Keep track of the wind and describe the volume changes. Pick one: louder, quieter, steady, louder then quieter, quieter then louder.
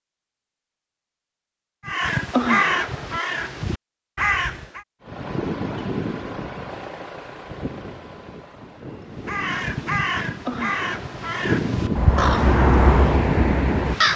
quieter then louder.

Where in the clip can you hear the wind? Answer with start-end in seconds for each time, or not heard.
5.0-14.1.